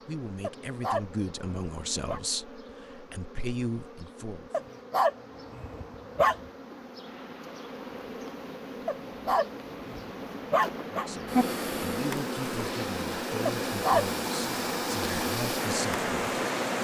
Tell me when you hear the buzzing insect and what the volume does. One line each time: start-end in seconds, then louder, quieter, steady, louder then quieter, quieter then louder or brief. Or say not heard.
0.0-16.7 louder.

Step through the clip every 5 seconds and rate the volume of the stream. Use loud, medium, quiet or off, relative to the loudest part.
off, quiet, medium, loud.